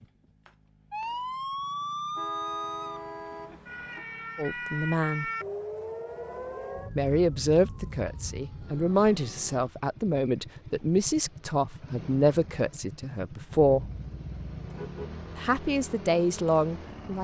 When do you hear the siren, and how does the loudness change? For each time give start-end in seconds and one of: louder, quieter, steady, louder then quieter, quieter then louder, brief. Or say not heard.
0.0-9.7 quieter.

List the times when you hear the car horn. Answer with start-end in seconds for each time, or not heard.
2.1-4.0, 13.7-15.2.